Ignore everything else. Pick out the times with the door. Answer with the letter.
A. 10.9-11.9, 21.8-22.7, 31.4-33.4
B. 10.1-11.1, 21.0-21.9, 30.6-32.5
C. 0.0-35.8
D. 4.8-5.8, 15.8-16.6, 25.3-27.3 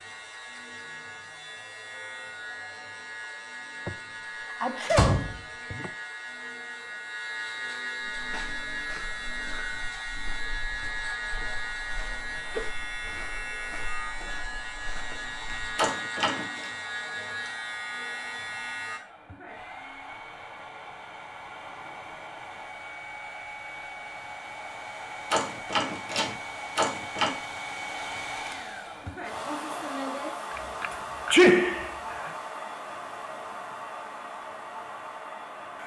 D.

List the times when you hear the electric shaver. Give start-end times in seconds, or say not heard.
0.0-19.0.